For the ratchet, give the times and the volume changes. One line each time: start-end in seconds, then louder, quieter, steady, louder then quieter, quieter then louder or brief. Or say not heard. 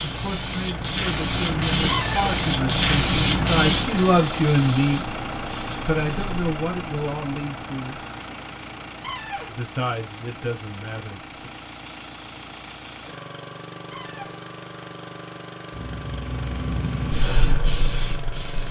not heard.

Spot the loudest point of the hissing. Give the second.
3 s.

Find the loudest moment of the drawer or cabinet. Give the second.
2 s.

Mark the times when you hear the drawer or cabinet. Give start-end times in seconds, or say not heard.
1.9-2.4, 9.0-9.6, 13.9-14.4.